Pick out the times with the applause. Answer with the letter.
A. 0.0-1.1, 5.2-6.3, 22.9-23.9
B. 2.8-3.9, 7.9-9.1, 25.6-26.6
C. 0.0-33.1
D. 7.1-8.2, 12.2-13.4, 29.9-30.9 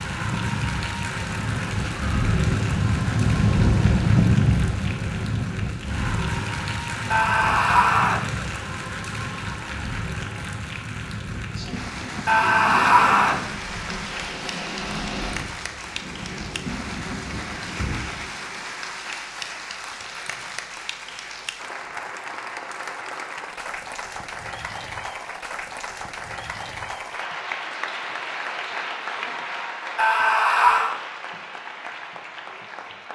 C.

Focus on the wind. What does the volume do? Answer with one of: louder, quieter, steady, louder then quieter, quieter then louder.
quieter.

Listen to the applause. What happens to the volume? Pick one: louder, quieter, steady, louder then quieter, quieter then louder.
steady.